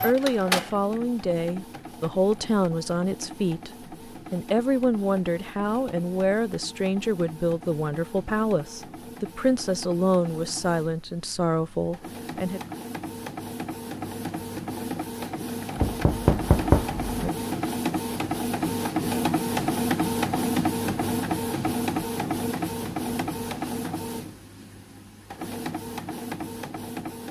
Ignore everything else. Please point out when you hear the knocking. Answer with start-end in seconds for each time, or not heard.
15.8-17.3.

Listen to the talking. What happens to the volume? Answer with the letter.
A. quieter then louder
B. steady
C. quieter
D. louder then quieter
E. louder
B.